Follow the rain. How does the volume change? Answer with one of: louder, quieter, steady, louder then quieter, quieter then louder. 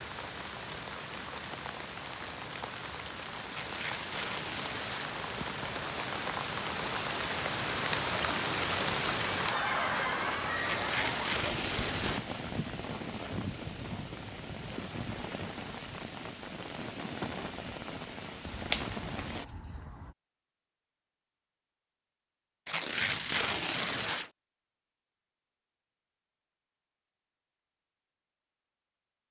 louder then quieter.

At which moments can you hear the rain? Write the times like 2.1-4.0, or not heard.
0.0-19.4.